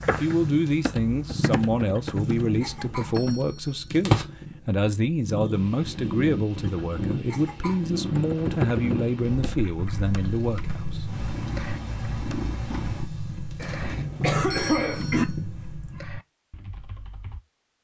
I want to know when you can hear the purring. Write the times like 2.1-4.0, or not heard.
0.0-16.1.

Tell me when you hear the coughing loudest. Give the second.
15 s.